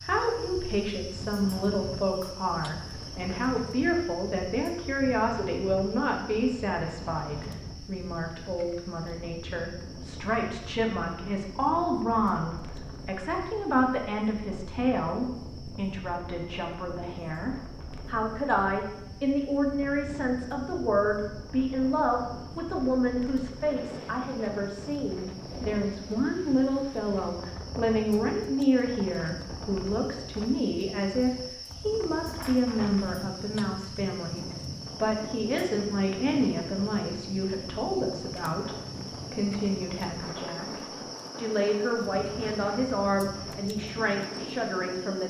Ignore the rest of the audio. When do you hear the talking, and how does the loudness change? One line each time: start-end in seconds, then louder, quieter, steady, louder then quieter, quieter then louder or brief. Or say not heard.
0.1-45.2 steady.